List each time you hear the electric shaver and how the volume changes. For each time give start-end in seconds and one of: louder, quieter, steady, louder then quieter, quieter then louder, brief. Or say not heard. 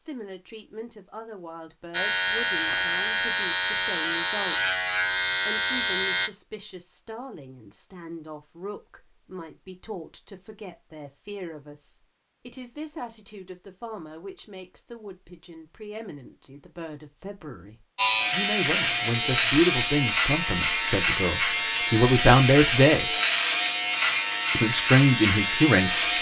1.9-6.3 steady
17.9-26.1 steady.